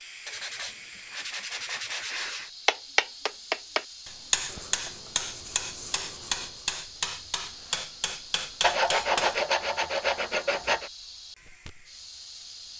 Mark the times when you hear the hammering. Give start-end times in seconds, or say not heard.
2.6-9.4.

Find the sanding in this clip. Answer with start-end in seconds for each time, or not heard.
0.2-2.5, 4.5-6.7, 8.6-10.9.